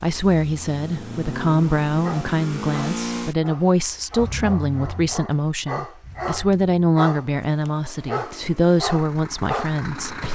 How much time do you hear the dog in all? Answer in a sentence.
The dog can be heard for 8 seconds in total.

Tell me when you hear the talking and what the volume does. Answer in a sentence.
You can hear the talking from 0.0 to 10.2 s, at a steady volume.